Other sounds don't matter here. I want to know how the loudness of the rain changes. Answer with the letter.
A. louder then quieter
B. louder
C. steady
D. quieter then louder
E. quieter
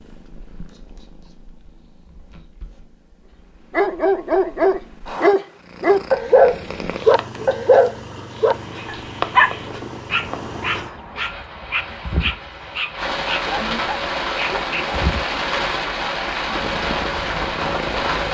B.